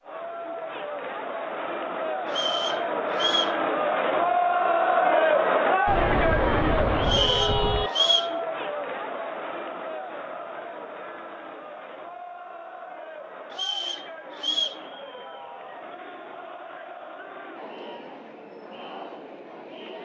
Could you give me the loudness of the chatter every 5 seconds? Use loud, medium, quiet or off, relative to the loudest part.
loud, loud, quiet, quiet.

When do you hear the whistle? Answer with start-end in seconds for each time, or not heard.
2.2-3.6, 7.0-8.3, 13.5-14.8.